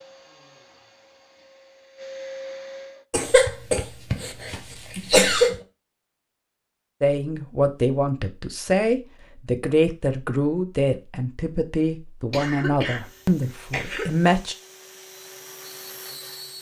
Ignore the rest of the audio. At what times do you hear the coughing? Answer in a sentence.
You can hear the coughing from 3.1 to 5.5 s and from 12.3 to 14.2 s.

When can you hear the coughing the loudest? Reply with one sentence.
The loudest moment of the coughing is at 5 seconds.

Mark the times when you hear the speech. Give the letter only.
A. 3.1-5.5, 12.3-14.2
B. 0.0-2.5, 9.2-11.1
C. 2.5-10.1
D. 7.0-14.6
D.